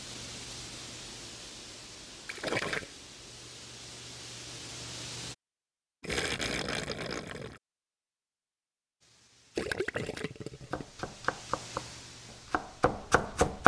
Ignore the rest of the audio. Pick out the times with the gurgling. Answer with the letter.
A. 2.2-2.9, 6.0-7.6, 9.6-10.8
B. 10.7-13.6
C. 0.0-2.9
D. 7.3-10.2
A.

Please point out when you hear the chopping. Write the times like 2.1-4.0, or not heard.
10.7-13.6.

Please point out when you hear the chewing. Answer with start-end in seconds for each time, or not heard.
not heard.